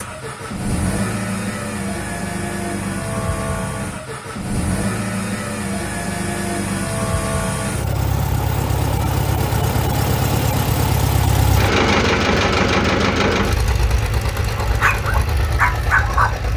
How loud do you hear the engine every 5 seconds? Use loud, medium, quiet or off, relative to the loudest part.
medium, loud, loud, medium.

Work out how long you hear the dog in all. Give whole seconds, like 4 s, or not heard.
2 s.